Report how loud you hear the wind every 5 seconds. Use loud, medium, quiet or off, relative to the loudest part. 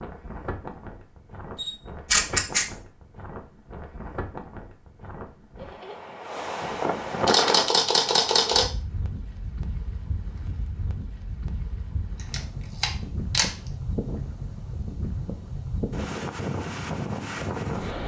medium, loud, medium, loud.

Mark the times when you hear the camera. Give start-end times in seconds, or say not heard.
1.6-2.6, 7.2-8.7, 12.3-13.5.